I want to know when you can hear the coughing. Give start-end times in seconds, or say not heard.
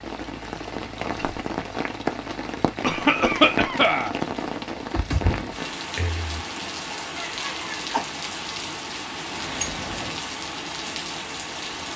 2.8-4.2, 7.2-8.1.